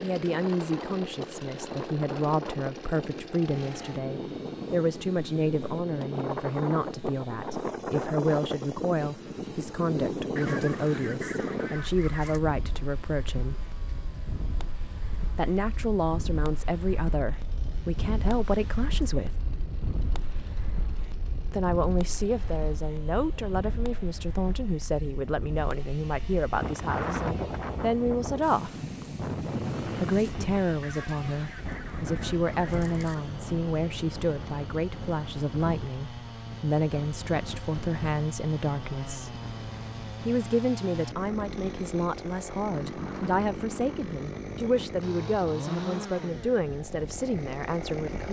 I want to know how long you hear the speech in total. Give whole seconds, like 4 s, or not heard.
42 s.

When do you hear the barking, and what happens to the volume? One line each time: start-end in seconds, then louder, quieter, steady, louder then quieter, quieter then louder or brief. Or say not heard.
not heard.